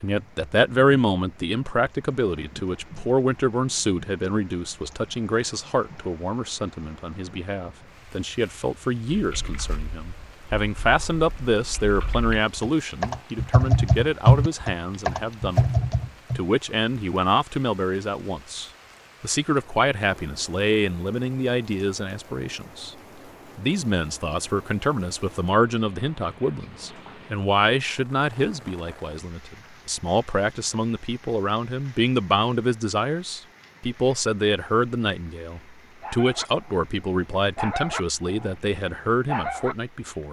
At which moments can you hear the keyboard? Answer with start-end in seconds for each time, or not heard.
9.1-16.4.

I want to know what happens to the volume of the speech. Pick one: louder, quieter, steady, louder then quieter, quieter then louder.
steady.